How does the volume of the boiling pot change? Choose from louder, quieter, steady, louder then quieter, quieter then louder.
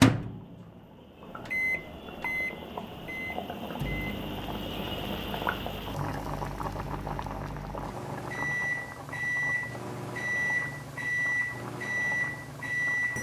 louder then quieter.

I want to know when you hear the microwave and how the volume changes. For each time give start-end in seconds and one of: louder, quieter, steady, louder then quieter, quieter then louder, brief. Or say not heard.
0.0-13.1 quieter then louder.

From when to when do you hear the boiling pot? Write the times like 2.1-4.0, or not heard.
0.1-13.1.